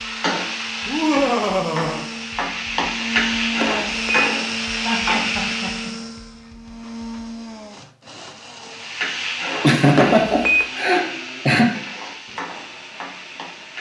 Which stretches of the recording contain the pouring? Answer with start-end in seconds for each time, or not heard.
not heard.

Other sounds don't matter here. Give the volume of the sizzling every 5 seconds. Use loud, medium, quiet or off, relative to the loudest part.
loud, loud, medium.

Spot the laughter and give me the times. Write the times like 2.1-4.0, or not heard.
0.8-2.0, 4.8-6.0, 9.6-11.8.